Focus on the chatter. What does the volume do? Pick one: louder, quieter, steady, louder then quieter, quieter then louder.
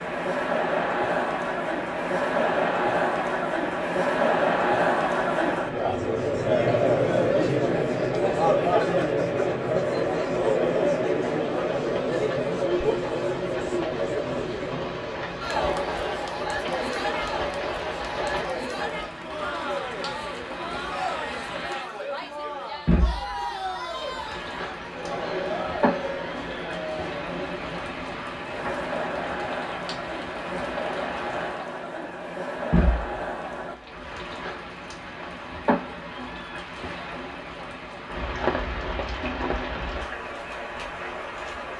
quieter.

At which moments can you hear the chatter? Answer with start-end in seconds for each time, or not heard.
0.0-33.8.